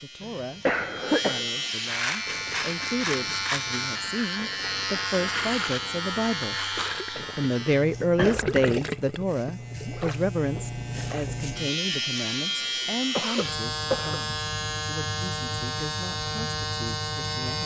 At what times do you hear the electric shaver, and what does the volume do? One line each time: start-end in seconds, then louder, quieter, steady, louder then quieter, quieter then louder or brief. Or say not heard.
0.0-17.6 quieter then louder.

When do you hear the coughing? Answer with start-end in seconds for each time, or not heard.
0.2-1.4, 8.2-8.8, 13.2-14.2.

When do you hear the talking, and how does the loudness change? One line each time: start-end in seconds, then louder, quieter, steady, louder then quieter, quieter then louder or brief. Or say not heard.
0.0-17.6 louder then quieter.